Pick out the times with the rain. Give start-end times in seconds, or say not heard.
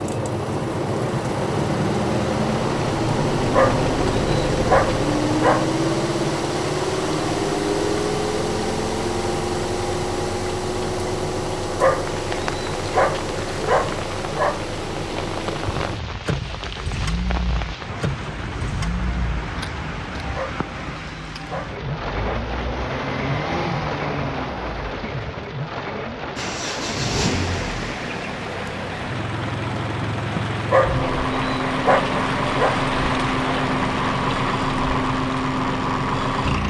12.0-36.6.